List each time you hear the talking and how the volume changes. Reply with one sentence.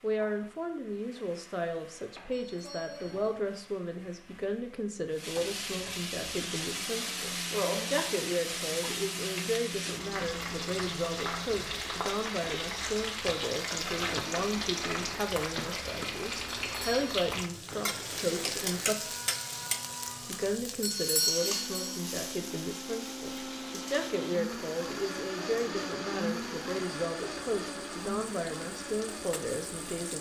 The talking can be heard from 0.0 to 19.1 s, at a steady volume; and from 20.2 to 30.1 s, at a steady volume.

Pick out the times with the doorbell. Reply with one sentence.
The doorbell can be heard from 2.3 to 3.3 s, from 16.6 to 17.1 s and from 20.8 to 22.0 s.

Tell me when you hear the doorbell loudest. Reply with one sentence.
The loudest moment of the doorbell is at 21 seconds.